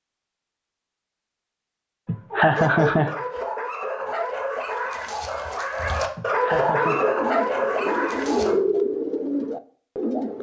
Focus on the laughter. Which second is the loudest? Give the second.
3 s.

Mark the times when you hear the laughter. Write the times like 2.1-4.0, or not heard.
2.0-3.1, 6.2-7.1.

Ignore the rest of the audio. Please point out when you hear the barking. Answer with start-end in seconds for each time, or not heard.
2.5-8.6.